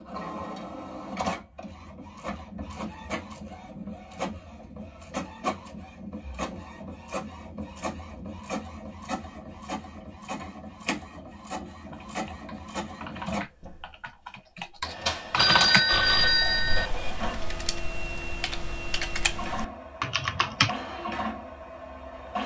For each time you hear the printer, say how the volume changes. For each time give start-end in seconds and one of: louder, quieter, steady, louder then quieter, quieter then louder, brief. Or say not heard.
0.0-22.4 steady.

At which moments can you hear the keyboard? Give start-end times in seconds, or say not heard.
11.9-20.8.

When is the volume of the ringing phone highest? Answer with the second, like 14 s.
16 s.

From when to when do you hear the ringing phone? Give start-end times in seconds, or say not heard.
15.3-16.9.